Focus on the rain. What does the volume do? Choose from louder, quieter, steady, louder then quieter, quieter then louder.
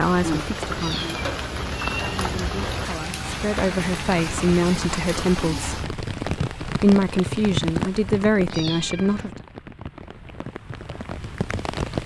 quieter.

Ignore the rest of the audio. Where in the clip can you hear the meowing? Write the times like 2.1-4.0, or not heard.
0.8-2.6, 8.5-9.3.